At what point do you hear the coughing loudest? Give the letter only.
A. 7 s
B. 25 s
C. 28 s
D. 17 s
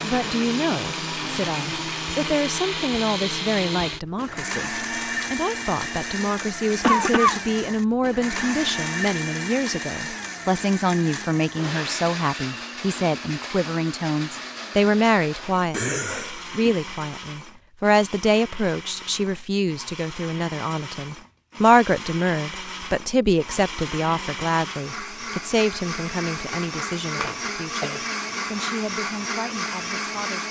A.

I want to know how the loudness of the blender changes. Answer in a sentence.
The loudness of the blender goes down, then up.